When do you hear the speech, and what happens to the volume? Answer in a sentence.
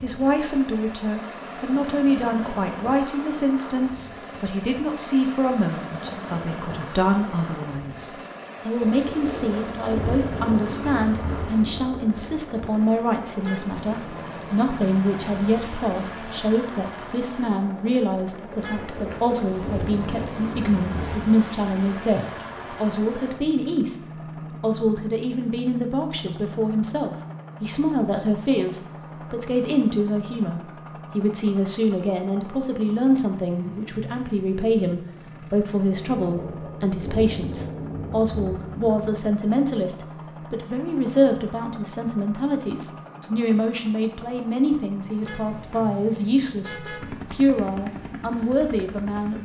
The speech can be heard from 0.0 to 49.3 s, at a steady volume.